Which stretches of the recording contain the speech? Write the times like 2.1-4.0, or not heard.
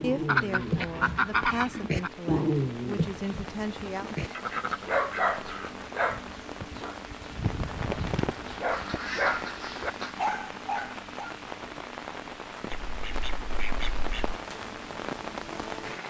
0.0-4.0.